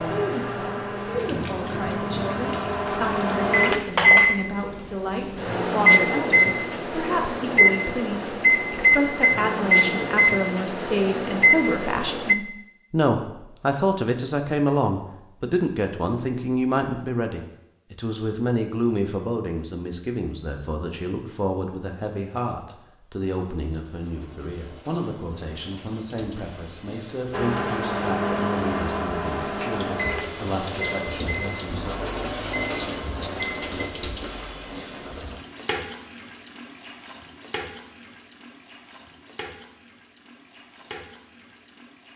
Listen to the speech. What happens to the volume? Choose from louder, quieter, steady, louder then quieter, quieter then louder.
louder then quieter.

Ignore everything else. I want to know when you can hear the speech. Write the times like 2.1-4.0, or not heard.
0.1-31.9.